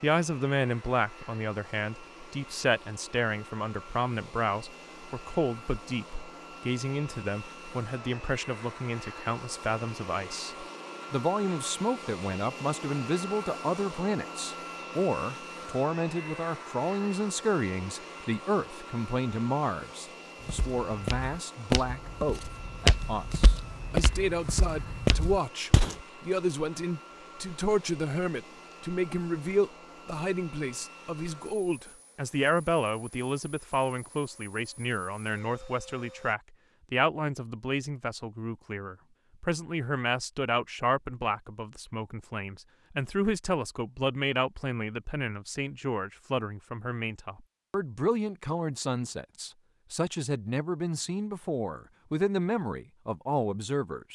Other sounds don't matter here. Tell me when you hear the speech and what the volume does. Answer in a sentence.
The speech can be heard from 0.0 to 54.1 s, at a steady volume.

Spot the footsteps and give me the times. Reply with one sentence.
The footsteps can be heard from 20.4 to 25.9 s.